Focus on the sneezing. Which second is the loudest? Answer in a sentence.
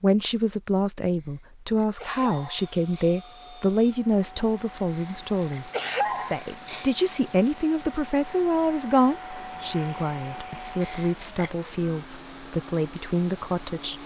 The volume of the sneezing peaks at 6 seconds.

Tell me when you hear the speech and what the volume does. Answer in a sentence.
The speech can be heard from 0.0 to 14.0 s, at a steady volume.